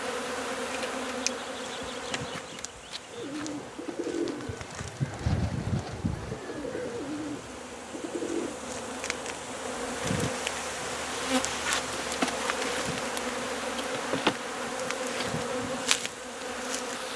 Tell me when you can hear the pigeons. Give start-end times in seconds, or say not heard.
3.0-8.6.